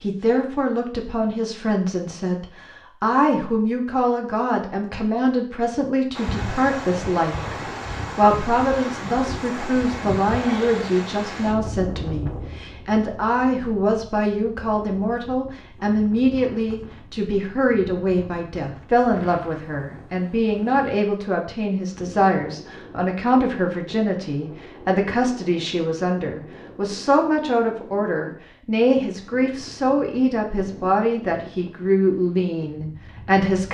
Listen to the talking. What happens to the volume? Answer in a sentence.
The volume of the talking stays about the same.